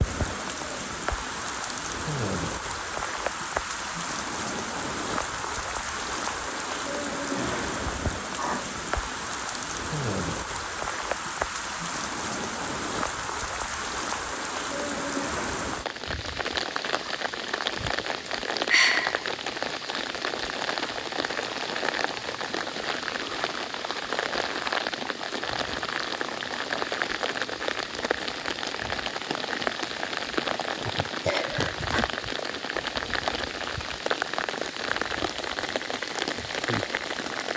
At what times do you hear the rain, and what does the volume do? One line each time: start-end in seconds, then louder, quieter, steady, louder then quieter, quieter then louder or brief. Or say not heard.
0.0-37.5 steady.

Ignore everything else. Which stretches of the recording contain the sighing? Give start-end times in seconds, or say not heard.
7.3-8.7, 18.6-19.2, 30.9-32.0.